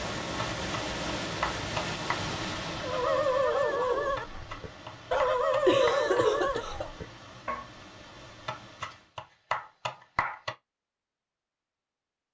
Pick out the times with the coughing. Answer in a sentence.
The coughing can be heard from 5.7 to 6.9 s.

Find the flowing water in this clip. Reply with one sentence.
You can hear the flowing water from 0.0 to 9.2 s.